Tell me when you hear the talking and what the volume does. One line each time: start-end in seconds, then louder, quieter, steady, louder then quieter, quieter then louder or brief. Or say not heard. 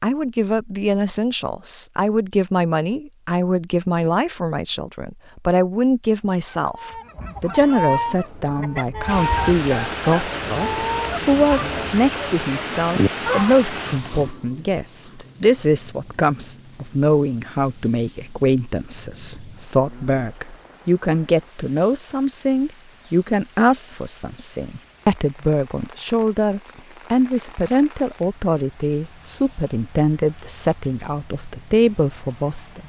0.0-32.8 steady.